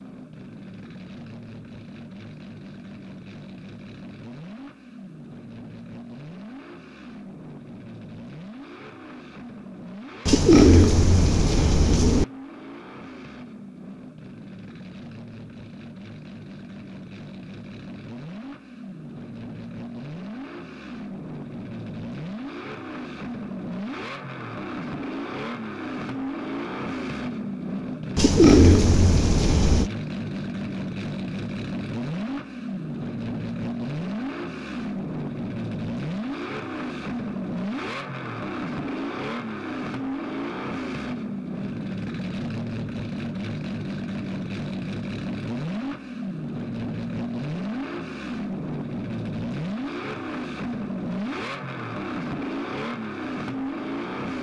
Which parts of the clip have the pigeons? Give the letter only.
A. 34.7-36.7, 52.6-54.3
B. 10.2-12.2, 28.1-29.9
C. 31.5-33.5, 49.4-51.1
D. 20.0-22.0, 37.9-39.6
B.